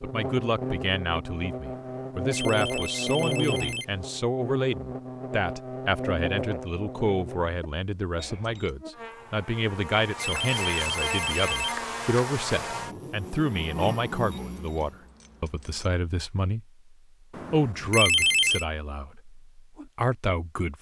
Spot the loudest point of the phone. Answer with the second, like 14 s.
18 s.